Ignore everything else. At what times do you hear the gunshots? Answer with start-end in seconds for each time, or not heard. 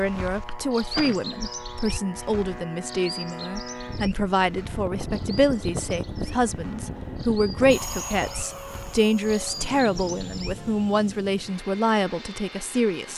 0.5-1.2.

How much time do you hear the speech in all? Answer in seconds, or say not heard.
13 s.